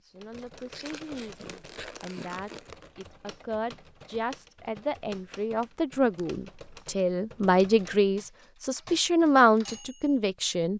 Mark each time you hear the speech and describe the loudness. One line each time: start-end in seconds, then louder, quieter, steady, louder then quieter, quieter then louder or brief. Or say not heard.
0.0-10.7 louder.